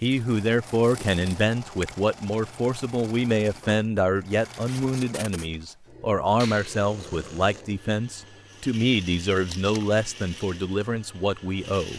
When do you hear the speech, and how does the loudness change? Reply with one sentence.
You can hear the speech from 0.0 to 11.9 s, at a steady volume.